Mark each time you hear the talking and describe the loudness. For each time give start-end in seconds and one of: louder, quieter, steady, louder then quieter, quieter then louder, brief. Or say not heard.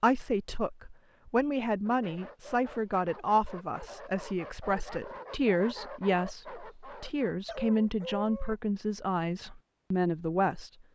0.0-10.7 steady.